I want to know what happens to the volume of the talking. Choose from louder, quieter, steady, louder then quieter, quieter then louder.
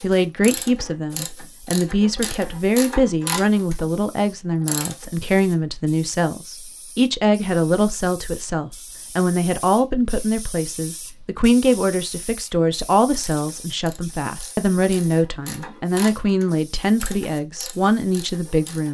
steady.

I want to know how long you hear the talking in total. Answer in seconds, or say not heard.
19 s.